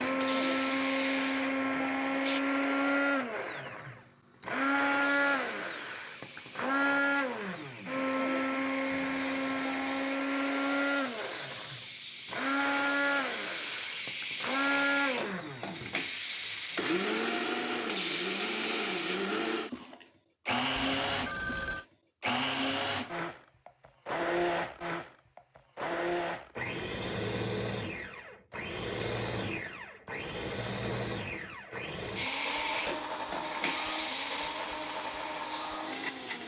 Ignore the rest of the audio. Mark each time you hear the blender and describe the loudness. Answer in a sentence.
You can hear the blender from 0.0 to 36.4 s, getting quieter.